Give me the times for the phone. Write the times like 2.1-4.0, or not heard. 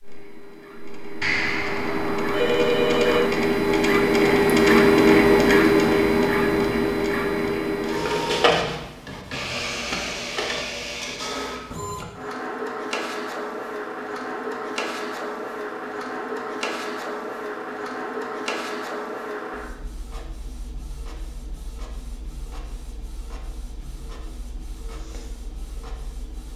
1.2-3.2.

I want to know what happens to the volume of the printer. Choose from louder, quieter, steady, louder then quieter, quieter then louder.
quieter.